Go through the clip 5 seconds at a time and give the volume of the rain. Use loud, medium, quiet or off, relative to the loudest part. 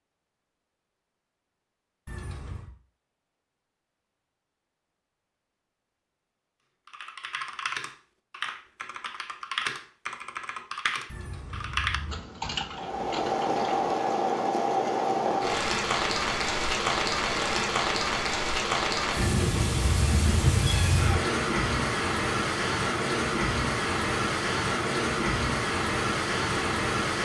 off, off, loud, loud, loud, loud.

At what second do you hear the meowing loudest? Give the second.
21 s.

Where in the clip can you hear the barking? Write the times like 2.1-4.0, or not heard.
not heard.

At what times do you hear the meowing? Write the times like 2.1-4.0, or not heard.
2.0-2.7, 11.1-12.2, 19.1-21.1.